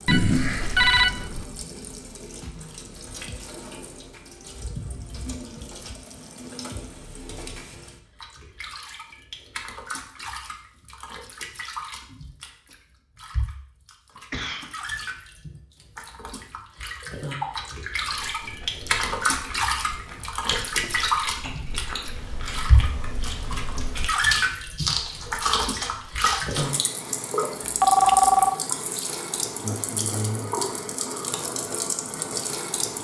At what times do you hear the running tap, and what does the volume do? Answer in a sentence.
The running tap can be heard from 0.0 to 32.9 s, getting louder.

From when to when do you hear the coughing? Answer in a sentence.
The coughing can be heard from 14.2 to 14.7 s.